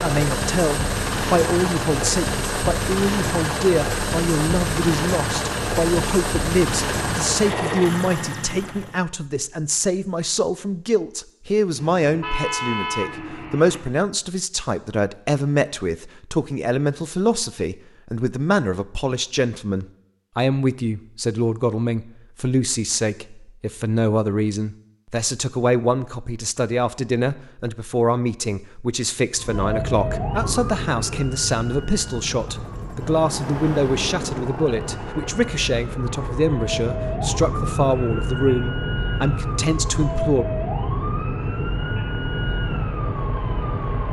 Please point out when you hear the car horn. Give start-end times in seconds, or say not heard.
11.8-13.8.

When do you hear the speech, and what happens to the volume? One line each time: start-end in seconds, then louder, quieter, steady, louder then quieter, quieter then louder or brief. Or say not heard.
0.0-40.5 steady.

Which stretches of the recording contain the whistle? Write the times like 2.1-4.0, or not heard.
not heard.